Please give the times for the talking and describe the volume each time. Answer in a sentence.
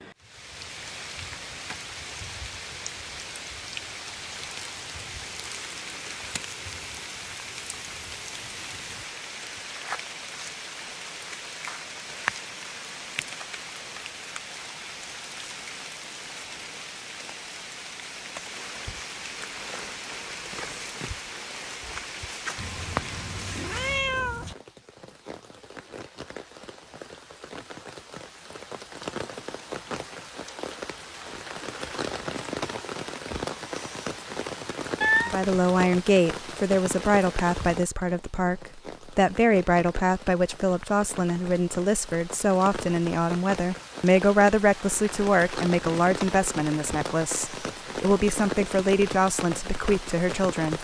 You can hear the talking from 35.2 to 50.7 s, at a steady volume.